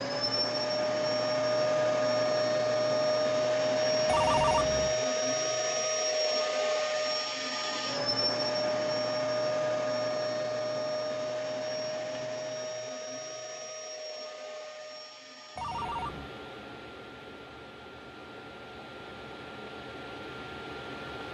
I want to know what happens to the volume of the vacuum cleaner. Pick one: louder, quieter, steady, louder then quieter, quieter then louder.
quieter.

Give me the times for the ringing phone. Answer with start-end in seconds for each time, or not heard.
4.0-5.0, 15.6-16.3.